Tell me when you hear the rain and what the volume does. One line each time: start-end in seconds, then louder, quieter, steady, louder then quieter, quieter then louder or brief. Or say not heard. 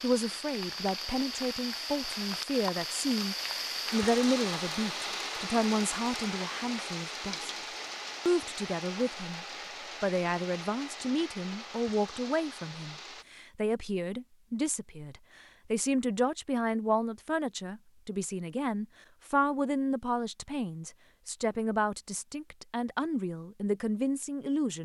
0.0-13.2 quieter.